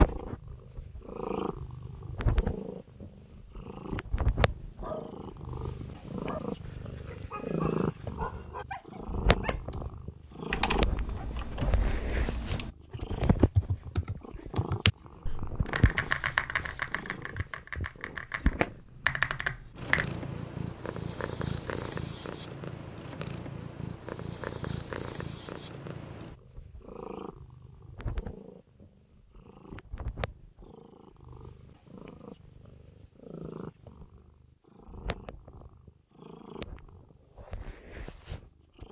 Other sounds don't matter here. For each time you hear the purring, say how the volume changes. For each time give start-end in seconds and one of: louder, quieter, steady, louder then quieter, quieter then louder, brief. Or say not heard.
0.0-38.8 quieter.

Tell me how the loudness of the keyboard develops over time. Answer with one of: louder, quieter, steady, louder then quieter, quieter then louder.
louder.